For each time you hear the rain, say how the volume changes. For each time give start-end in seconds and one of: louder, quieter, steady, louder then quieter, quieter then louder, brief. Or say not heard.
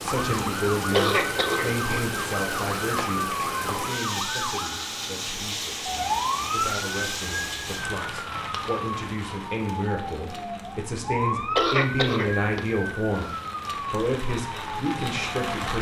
0.0-15.7 quieter then louder.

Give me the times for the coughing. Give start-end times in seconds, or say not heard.
0.9-1.8, 11.6-13.4.